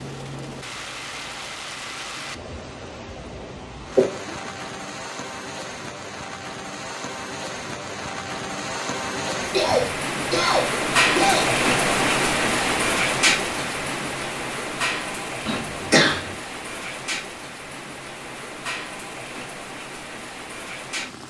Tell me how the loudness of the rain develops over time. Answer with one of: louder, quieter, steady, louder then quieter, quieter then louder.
louder then quieter.